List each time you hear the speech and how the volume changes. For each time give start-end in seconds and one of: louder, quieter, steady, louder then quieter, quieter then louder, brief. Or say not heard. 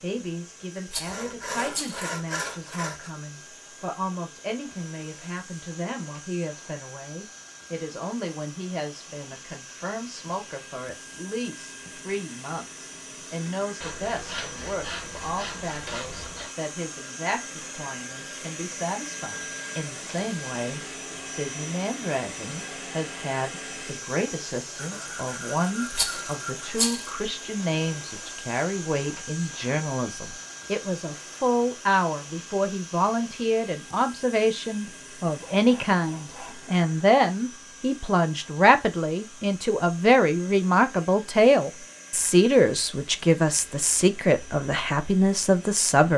0.0-46.1 louder.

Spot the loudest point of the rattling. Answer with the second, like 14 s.
27 s.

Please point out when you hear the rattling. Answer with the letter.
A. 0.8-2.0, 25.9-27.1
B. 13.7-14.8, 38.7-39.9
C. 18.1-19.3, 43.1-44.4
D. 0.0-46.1
A.